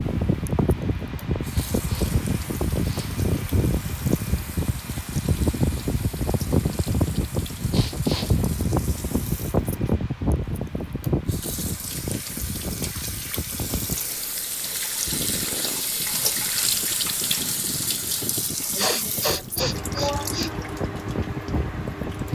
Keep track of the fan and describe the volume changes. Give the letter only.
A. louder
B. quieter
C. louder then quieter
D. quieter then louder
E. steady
B.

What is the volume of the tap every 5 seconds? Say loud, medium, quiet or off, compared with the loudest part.
quiet, quiet, medium, loud, medium.